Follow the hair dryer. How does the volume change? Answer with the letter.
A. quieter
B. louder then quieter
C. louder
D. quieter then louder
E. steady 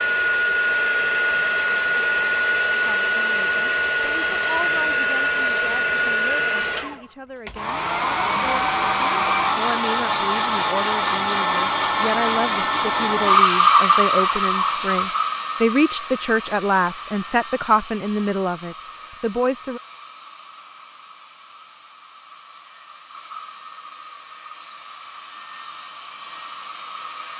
A.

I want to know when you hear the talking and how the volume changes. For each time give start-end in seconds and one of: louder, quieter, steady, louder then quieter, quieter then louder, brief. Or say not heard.
2.9-19.8 louder.